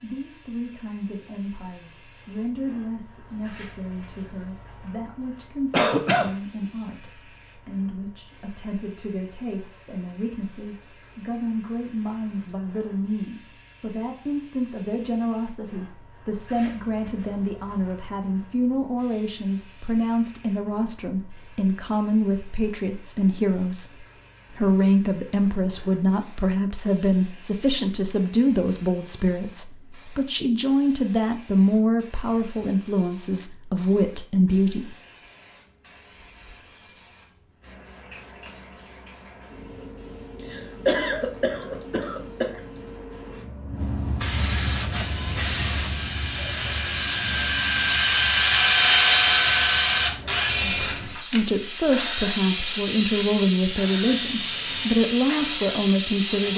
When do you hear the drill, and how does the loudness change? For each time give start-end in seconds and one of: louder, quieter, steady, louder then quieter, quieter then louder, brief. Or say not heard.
44.9-56.5 louder then quieter.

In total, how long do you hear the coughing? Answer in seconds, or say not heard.
3 s.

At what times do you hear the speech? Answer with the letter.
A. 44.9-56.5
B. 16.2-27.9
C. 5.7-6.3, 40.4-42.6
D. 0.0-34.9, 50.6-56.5
D.